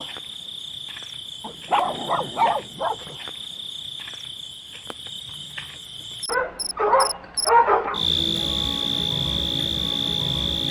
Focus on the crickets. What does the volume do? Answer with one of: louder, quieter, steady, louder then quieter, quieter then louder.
louder.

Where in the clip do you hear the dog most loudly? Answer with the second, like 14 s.
8 s.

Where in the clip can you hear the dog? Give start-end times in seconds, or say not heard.
1.4-3.1, 6.2-8.1.